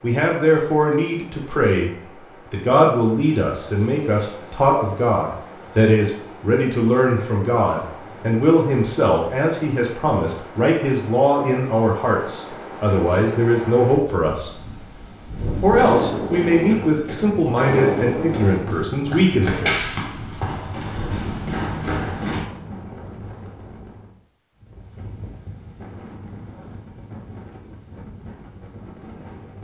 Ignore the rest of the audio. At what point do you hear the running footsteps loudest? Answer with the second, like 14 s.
20 s.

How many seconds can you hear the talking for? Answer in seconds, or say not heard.
18 s.